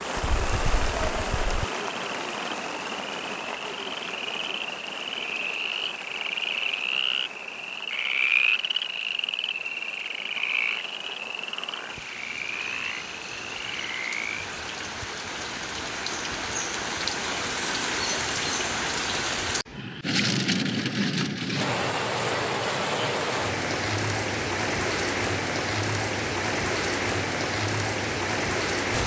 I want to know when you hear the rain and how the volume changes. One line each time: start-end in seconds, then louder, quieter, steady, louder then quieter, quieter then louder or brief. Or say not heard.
0.0-29.0 quieter then louder.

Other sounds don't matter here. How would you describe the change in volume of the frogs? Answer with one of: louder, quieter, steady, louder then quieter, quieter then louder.
louder then quieter.